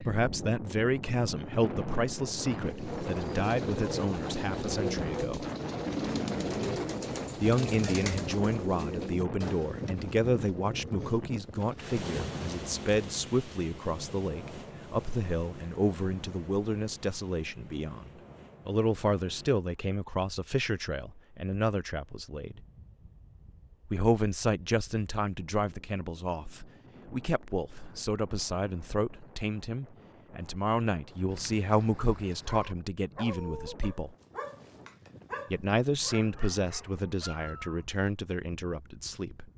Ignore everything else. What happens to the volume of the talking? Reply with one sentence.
The volume of the talking stays about the same.